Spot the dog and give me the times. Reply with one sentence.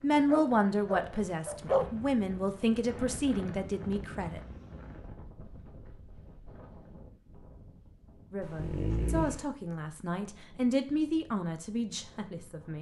The dog can be heard from 0.2 to 1.9 s and from 8.4 to 9.4 s.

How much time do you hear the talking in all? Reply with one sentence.
The talking can be heard for 9 seconds in total.